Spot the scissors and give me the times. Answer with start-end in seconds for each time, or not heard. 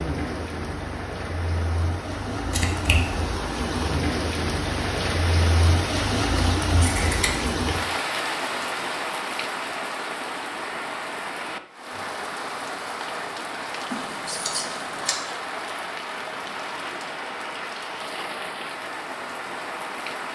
2.5-3.1, 6.8-7.5, 13.9-15.2.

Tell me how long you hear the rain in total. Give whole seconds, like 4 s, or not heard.
20 s.